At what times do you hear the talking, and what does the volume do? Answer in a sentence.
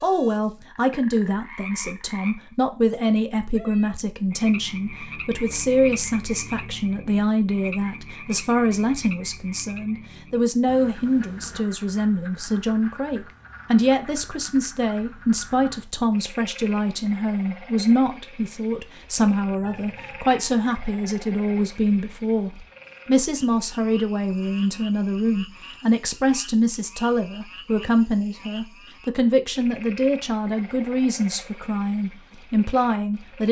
You can hear the talking from 0.0 to 33.4 s, at a steady volume.